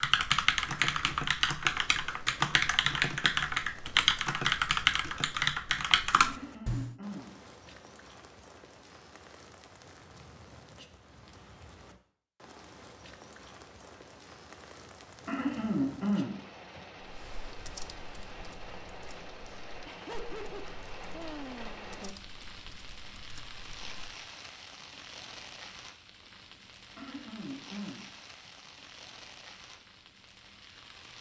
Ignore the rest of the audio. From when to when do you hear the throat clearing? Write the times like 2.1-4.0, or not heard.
6.2-7.3, 15.2-16.8, 26.9-28.5.